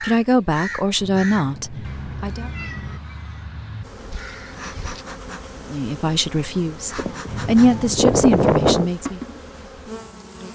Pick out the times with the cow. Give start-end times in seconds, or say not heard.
7.0-8.9.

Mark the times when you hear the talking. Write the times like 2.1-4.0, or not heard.
0.0-2.5, 5.7-9.2.